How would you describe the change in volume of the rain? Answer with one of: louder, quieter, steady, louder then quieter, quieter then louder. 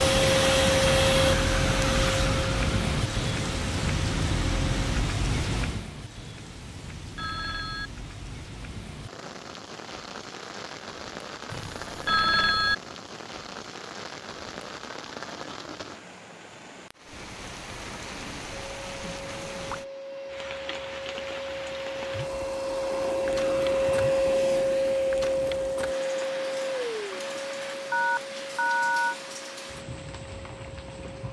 quieter.